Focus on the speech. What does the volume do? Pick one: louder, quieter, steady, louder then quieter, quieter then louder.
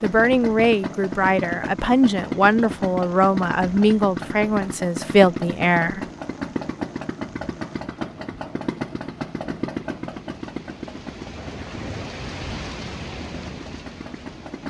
steady.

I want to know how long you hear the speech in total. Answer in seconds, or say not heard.
6 s.